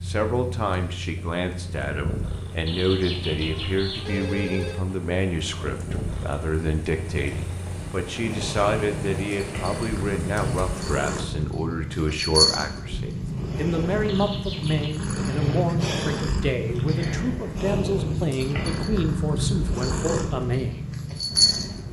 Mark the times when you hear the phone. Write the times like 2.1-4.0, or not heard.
2.6-4.8, 14.1-15.1.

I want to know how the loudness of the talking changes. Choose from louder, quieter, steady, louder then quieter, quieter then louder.
steady.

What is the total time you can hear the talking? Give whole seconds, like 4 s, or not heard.
21 s.